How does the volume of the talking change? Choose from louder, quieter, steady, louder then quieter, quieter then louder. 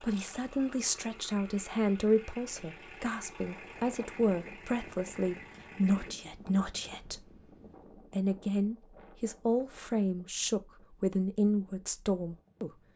steady.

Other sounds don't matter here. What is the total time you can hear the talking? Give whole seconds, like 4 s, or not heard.
12 s.